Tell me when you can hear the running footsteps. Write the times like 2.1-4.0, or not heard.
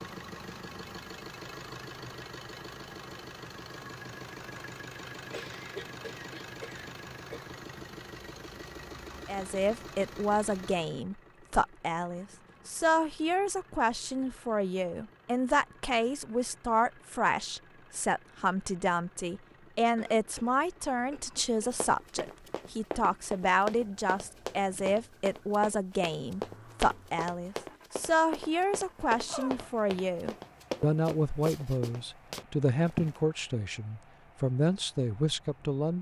21.7-33.2.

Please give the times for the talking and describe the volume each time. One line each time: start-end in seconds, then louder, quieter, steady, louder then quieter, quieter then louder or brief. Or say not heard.
9.2-35.9 steady.